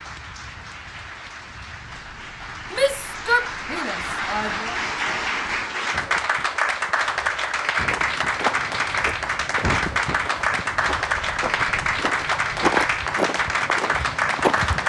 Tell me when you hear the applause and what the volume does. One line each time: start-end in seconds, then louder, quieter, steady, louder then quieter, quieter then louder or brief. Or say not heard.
0.0-14.8 louder.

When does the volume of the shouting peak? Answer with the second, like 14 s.
3 s.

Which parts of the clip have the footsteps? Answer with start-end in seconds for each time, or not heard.
7.8-14.8.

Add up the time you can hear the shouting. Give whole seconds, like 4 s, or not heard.
2 s.